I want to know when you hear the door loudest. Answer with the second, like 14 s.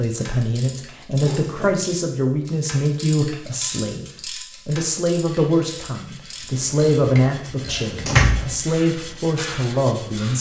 8 s.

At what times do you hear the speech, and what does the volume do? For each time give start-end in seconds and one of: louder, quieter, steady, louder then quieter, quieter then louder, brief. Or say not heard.
0.0-10.3 steady.